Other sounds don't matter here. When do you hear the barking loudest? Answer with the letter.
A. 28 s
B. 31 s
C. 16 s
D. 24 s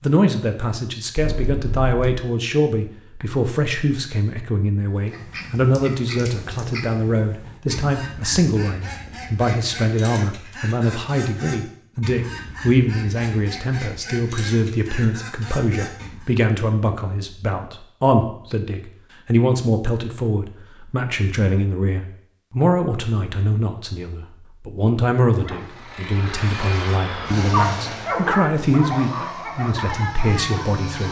A.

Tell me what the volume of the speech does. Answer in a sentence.
The volume of the speech stays about the same.